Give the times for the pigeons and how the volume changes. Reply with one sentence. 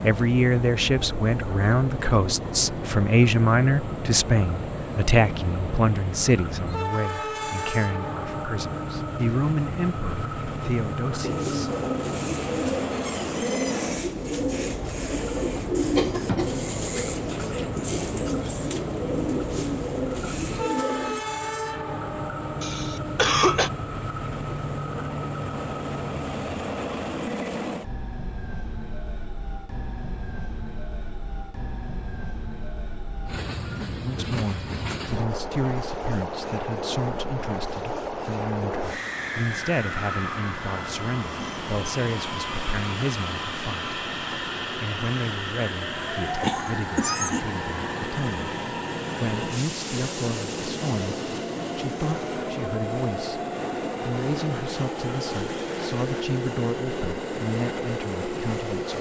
The pigeons can be heard from 11.2 to 21.2 s, at a steady volume.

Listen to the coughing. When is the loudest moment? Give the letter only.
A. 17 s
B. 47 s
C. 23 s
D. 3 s
C.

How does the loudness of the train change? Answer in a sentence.
The volume of the train stays about the same.